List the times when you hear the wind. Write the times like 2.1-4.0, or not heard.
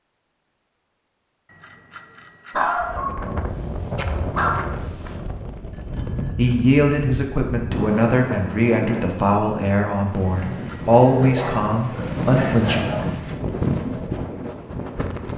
2.8-15.3.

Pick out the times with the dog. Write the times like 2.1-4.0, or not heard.
2.5-5.2, 11.1-13.1.